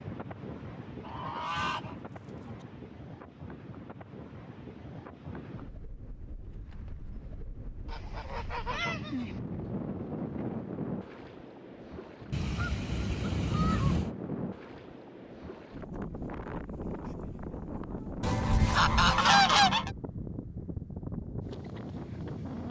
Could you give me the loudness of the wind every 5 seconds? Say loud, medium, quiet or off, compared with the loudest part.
medium, medium, loud, loud, loud.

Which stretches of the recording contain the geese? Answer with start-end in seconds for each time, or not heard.
1.0-2.6, 7.8-9.4, 12.3-14.2, 18.2-19.9.